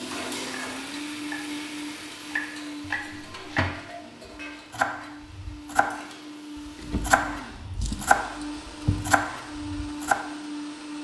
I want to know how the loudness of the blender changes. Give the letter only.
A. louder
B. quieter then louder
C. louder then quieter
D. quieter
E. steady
B.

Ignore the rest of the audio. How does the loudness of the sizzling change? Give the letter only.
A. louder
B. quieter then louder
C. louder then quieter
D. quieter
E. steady
D.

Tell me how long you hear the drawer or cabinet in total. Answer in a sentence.
The drawer or cabinet can be heard for 3 seconds in total.